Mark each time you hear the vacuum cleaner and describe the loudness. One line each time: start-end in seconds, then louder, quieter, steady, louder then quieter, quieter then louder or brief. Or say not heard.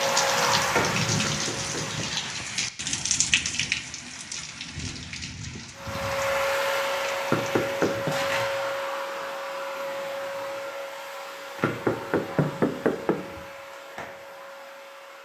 0.0-2.4 brief
5.8-15.2 quieter.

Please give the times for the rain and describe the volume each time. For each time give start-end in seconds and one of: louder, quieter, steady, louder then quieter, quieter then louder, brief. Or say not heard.
0.0-8.0 quieter.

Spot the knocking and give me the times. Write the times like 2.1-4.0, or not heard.
1.2-2.1, 7.3-8.2, 11.6-13.4.